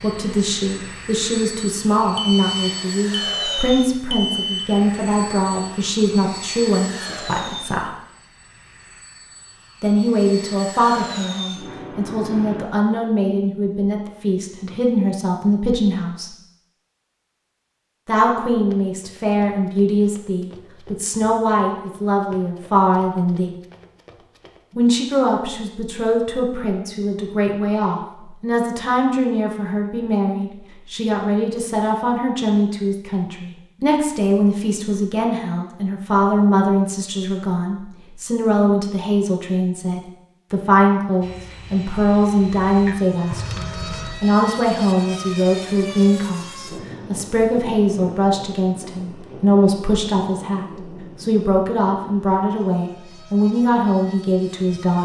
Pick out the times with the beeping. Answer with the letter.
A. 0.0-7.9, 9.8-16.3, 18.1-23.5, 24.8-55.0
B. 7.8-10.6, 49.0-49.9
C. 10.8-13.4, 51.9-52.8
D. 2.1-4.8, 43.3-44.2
D.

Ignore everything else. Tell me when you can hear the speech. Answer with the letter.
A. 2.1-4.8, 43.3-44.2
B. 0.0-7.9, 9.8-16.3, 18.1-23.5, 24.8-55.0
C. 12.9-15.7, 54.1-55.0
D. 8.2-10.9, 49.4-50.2
B.